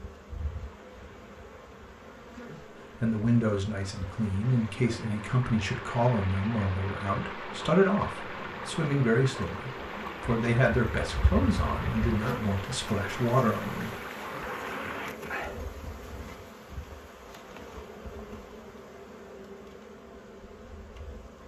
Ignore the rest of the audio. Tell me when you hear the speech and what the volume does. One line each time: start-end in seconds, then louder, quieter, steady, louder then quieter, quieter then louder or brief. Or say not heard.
2.5-14.4 steady.